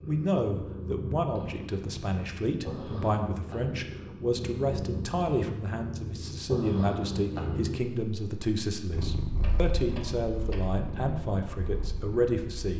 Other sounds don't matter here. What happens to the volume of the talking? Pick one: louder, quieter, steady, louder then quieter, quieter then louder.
steady.